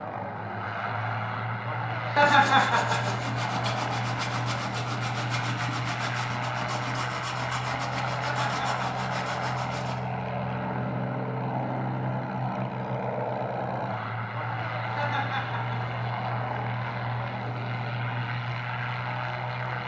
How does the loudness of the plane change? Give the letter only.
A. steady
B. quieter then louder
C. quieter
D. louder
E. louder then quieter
A.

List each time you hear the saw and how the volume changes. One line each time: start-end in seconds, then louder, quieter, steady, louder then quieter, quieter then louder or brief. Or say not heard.
2.2-10.0 steady.